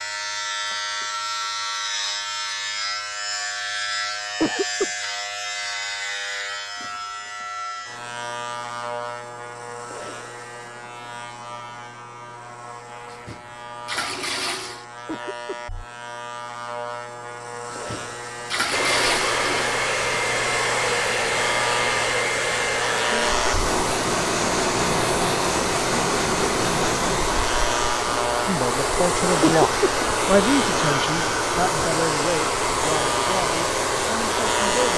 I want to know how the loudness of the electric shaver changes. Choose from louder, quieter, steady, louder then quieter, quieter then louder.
quieter then louder.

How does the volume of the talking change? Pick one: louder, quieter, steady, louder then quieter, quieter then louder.
quieter.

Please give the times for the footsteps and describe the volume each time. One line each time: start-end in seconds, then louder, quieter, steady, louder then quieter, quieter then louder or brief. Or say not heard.
not heard.